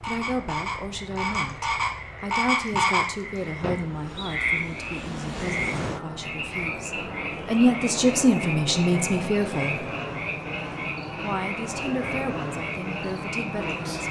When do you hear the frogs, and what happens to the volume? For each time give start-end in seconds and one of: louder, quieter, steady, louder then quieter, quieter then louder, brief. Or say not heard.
0.0-14.0 quieter.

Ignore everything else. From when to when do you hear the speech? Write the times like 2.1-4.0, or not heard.
0.0-9.8, 11.2-14.0.